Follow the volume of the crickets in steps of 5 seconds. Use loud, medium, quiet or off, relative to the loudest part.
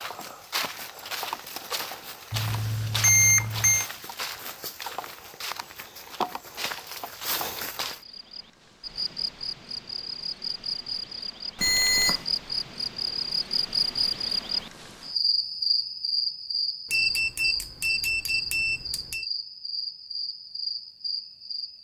off, medium, loud, loud, medium.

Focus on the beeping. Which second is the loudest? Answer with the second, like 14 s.
3 s.